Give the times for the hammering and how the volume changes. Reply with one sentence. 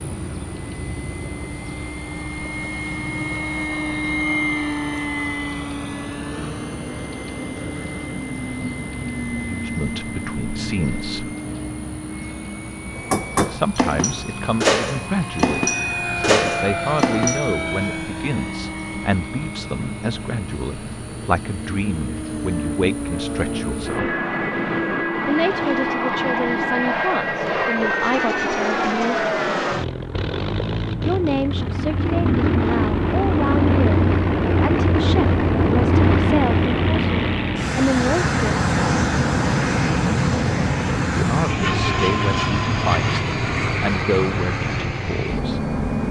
You can hear the hammering from 12.9 to 17.6 s, at a steady volume.